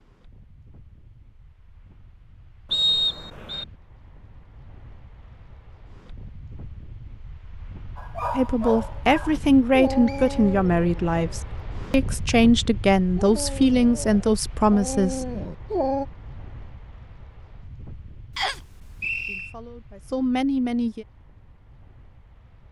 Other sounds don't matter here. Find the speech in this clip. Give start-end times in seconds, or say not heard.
8.3-15.2, 19.2-21.1.